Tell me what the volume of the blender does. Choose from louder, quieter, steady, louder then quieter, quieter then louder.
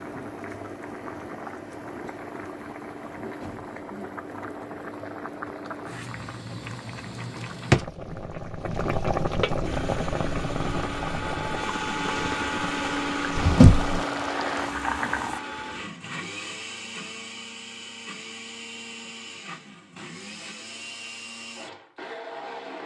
quieter.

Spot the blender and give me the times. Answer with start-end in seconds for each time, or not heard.
9.6-22.8.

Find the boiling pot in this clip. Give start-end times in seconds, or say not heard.
0.0-15.4.